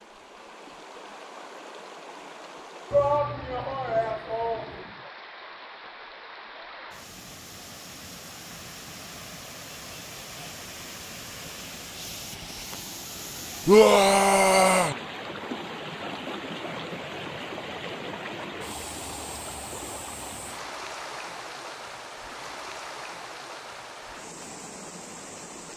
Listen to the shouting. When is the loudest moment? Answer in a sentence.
The volume of the shouting peaks at 14 seconds.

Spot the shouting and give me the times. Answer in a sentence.
You can hear the shouting from 2.9 to 5.1 s and from 13.7 to 14.9 s.